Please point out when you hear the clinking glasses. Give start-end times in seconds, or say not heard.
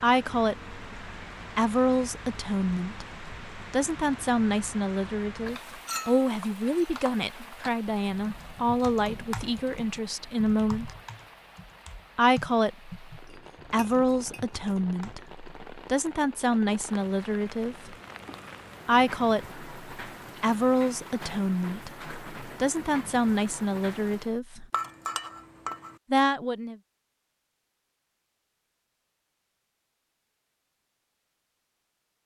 5.8-6.9, 13.2-14.7, 24.7-25.9.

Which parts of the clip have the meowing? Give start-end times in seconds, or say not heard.
not heard.